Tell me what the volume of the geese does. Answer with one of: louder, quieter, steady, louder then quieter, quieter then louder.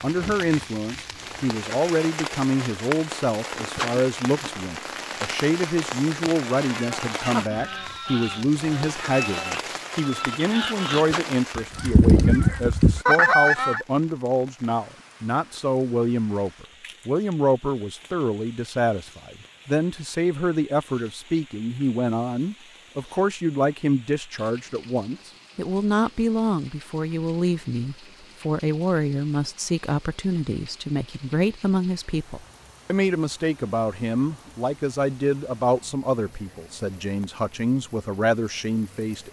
louder.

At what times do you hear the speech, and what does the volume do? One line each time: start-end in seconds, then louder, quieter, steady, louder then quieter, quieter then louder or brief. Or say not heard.
0.0-39.2 steady.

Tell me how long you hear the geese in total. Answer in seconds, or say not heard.
7 s.